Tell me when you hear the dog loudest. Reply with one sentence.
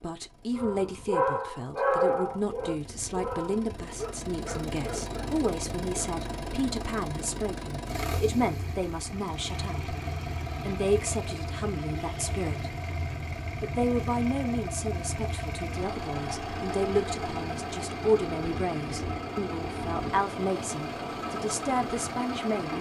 The loudest moment of the dog is at 2 seconds.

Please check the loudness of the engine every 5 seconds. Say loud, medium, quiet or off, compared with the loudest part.
medium, loud, loud, loud, loud.